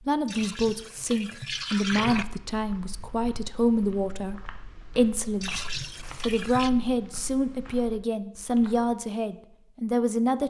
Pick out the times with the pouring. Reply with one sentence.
The pouring can be heard from 0.2 to 2.2 s and from 5.4 to 6.7 s.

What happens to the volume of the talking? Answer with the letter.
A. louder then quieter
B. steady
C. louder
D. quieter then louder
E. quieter
B.